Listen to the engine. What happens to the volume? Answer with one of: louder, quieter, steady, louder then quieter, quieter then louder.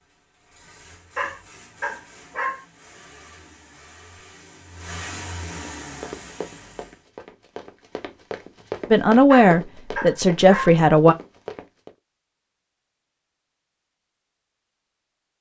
louder.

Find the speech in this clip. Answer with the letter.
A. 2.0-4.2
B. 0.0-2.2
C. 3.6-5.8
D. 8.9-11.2
D.